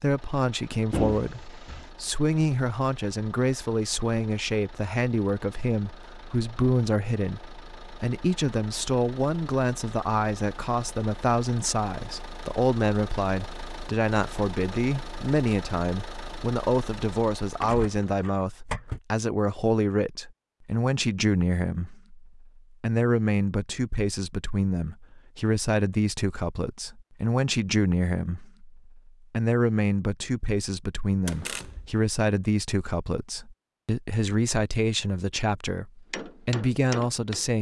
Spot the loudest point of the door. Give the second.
1 s.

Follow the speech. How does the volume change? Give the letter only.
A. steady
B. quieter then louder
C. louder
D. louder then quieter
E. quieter
A.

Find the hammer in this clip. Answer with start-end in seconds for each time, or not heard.
36.1-37.5.